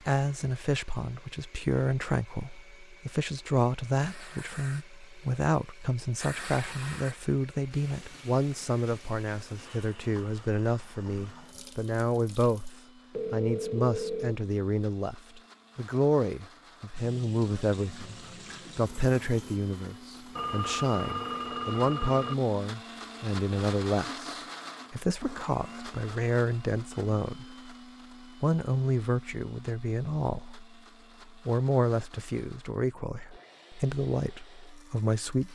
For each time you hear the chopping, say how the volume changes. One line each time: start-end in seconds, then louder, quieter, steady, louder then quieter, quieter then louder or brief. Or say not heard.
not heard.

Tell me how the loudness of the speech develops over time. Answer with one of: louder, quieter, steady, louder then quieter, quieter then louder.
steady.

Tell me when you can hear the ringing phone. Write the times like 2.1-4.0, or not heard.
13.1-14.3, 20.4-22.4.